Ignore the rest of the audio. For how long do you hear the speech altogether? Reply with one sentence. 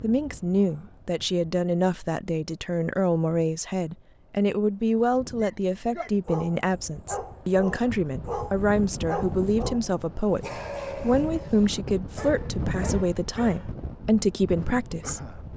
You can hear the speech for 15 seconds altogether.